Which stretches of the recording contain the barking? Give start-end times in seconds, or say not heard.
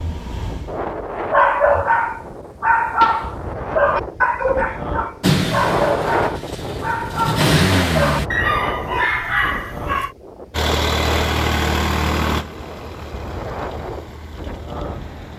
1.3-10.1.